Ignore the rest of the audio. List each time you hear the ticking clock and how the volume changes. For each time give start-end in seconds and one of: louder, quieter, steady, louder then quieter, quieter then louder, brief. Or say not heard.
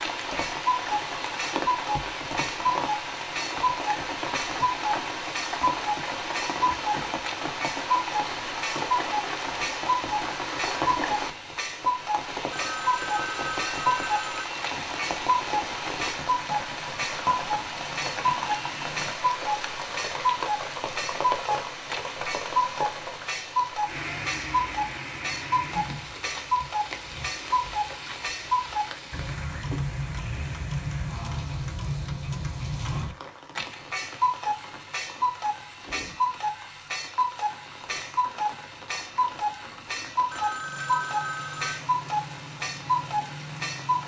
0.0-44.0 steady.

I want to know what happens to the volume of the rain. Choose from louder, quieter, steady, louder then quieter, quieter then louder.
quieter.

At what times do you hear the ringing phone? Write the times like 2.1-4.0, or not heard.
12.5-14.5, 40.3-41.8.